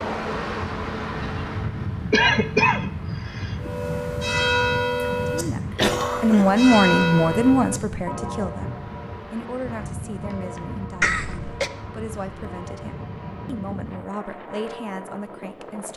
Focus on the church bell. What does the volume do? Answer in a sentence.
The volume of the church bell goes down.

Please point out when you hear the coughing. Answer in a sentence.
The coughing can be heard from 2.1 to 3.7 s, from 5.8 to 6.5 s and from 11.0 to 11.7 s.